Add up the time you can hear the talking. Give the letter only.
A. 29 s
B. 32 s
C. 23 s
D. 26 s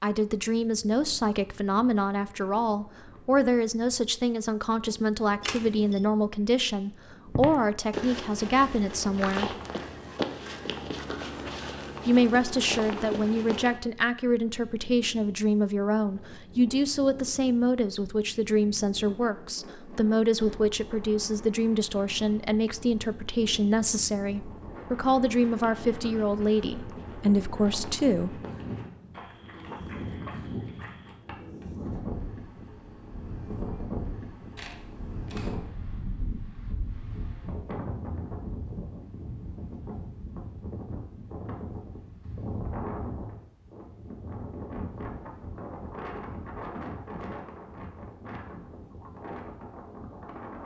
D.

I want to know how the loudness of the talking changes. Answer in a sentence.
The loudness of the talking stays about the same.